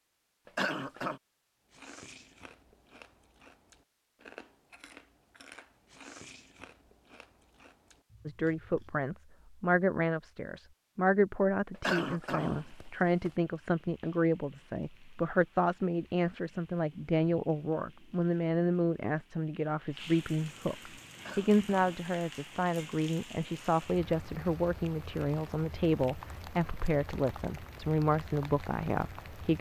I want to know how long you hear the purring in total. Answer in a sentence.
The purring can't be heard in this clip.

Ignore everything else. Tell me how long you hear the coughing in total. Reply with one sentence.
You can hear the coughing for 3 seconds altogether.